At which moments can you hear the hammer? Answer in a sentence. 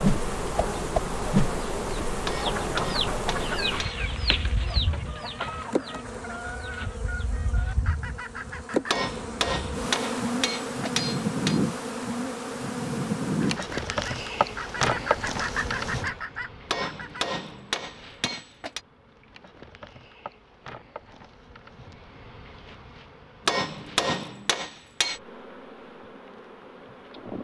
The hammer can be heard from 2.2 to 4.0 s, from 8.8 to 11.6 s, from 16.6 to 18.8 s and from 23.4 to 25.2 s.